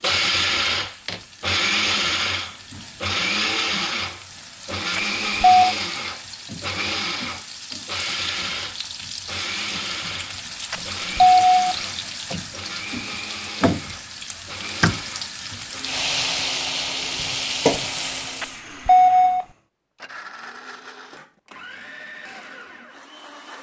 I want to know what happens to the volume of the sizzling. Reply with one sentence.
The loudness of the sizzling goes up.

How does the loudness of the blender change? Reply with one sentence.
The volume of the blender goes down.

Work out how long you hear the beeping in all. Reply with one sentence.
The beeping can be heard for 3 seconds in total.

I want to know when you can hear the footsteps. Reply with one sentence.
You can't hear the footsteps here.